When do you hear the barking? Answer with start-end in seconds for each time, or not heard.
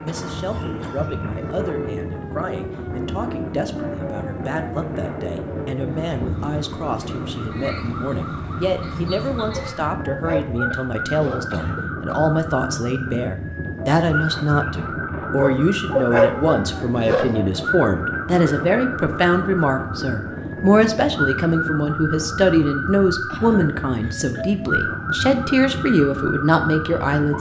9.5-11.5, 15.3-17.4.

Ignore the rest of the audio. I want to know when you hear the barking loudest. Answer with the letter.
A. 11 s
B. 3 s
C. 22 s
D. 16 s
D.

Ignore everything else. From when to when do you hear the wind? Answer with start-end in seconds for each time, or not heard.
0.0-27.3.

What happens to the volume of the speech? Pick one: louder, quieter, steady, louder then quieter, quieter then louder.
louder.